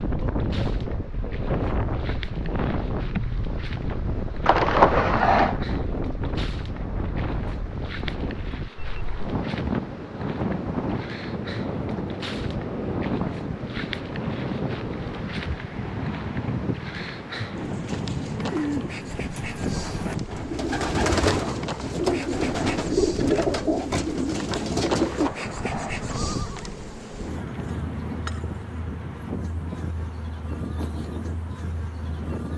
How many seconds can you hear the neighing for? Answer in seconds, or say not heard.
3 s.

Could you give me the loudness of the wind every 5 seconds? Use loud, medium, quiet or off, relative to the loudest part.
loud, loud, loud, loud, loud, medium, medium.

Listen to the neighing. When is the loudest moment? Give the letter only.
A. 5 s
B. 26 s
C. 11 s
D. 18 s
A.